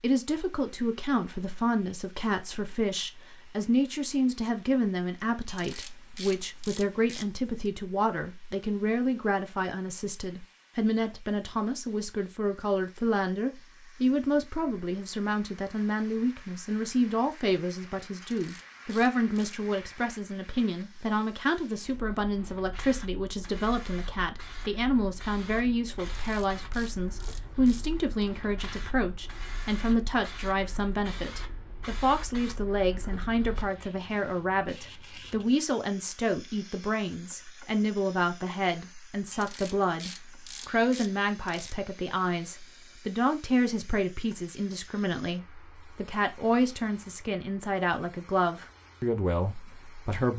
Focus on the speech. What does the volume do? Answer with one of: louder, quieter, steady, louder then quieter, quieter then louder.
steady.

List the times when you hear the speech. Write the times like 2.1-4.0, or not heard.
0.0-50.3.